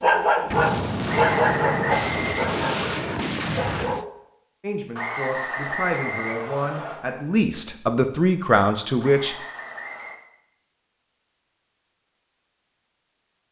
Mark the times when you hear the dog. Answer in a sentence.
The dog can be heard from 0.0 to 4.2 s.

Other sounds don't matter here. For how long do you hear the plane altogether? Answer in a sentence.
The plane can't be heard in this clip.